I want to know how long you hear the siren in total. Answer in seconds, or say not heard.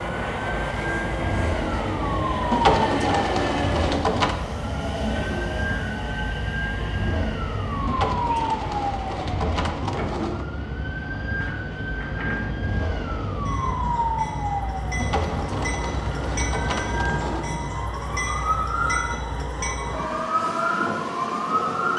22 s.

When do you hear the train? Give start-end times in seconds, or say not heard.
0.0-21.9.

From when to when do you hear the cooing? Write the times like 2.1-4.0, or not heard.
2.5-4.3, 7.8-10.4, 14.9-17.5.